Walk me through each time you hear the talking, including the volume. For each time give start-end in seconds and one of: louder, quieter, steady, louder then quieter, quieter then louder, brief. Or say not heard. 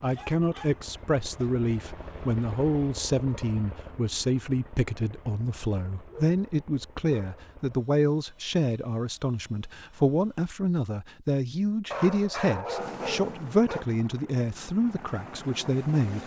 0.0-16.2 steady.